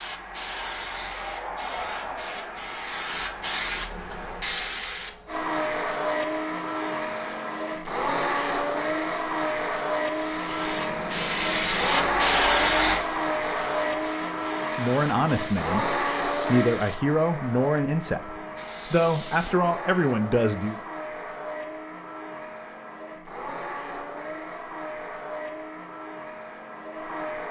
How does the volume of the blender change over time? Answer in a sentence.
The loudness of the blender goes down.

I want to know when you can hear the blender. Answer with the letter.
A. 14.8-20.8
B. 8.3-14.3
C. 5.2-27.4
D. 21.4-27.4
C.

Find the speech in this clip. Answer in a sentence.
The speech can be heard from 14.8 to 20.8 s.